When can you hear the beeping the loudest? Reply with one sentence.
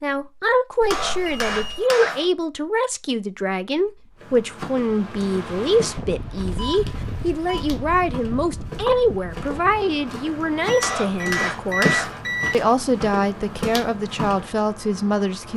The volume of the beeping peaks at 12 seconds.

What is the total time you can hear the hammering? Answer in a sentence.
The hammering can be heard for 3 seconds in total.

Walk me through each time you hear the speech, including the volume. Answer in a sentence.
You can hear the speech from 0.0 to 15.5 s, at a steady volume.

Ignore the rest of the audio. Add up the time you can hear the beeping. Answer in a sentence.
The beeping can be heard for 4 seconds in total.